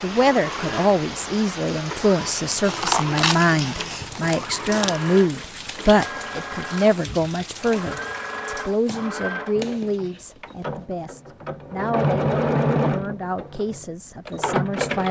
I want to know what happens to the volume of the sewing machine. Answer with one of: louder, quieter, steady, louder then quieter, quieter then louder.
louder.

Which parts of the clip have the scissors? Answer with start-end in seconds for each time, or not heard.
2.6-5.0, 8.8-10.8.